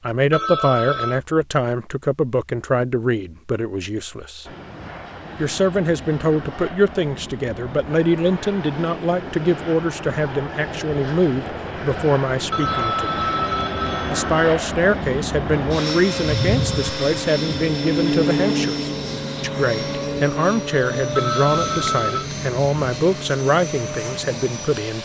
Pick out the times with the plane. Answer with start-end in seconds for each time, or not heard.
4.5-25.0.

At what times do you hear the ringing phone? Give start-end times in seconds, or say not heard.
0.3-1.2, 12.5-14.3, 21.1-22.2.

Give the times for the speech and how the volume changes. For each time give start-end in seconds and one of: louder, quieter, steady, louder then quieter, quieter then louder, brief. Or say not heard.
0.0-4.5 quieter
5.3-13.2 steady
14.1-25.0 steady.